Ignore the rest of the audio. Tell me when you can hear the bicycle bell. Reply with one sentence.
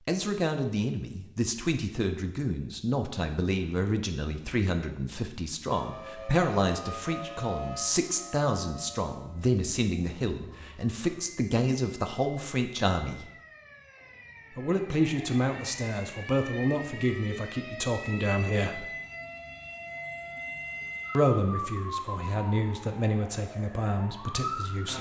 The bicycle bell can't be heard in this clip.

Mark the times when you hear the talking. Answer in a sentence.
You can hear the talking from 0.1 to 13.3 s, from 14.6 to 18.9 s and from 21.1 to 24.9 s.